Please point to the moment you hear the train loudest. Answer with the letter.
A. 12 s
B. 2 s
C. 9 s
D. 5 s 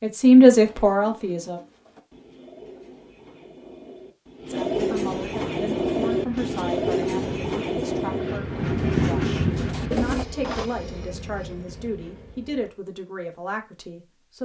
C.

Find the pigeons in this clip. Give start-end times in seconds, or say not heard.
0.5-10.7.